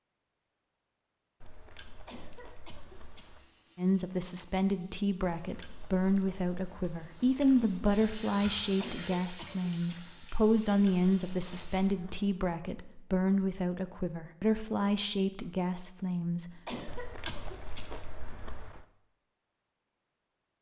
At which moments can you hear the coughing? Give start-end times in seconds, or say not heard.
2.0-3.2, 8.8-10.0, 16.6-17.9.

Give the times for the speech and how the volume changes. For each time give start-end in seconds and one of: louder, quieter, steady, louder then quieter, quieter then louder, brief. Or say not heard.
3.8-16.8 steady.